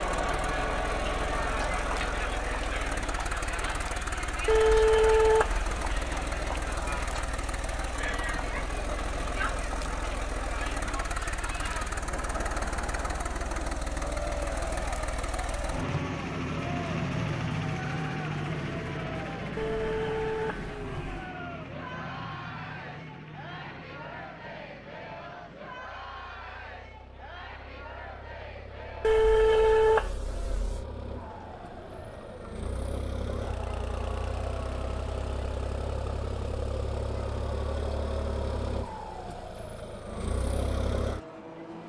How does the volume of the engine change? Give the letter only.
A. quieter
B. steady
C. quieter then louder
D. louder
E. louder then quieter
C.